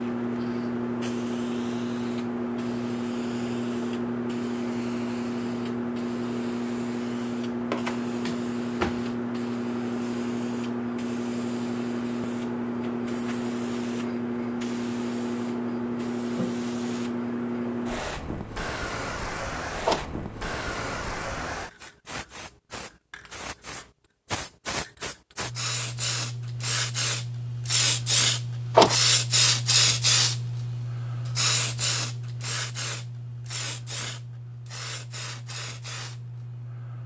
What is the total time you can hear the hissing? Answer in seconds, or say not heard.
37 s.